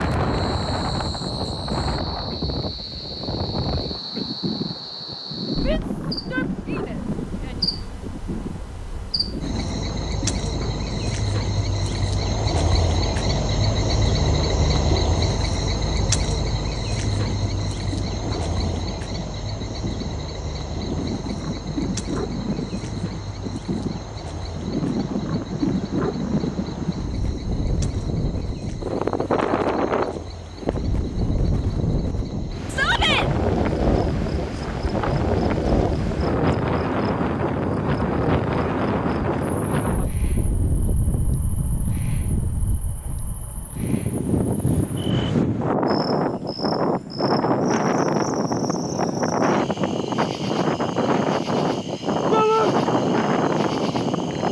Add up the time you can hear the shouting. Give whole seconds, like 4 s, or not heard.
3 s.